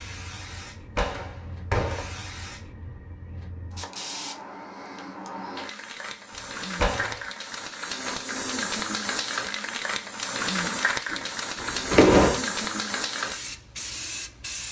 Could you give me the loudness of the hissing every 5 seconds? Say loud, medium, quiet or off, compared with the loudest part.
medium, loud, loud.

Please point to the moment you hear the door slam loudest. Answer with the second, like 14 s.
12 s.